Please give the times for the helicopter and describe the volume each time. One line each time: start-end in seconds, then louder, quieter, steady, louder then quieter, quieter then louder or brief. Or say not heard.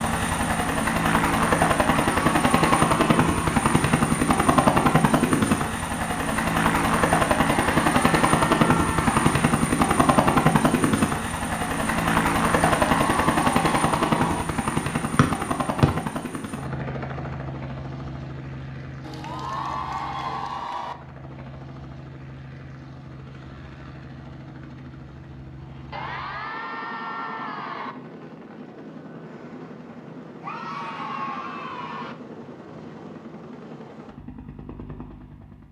0.0-35.6 quieter.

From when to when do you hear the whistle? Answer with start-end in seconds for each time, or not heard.
15.2-15.9.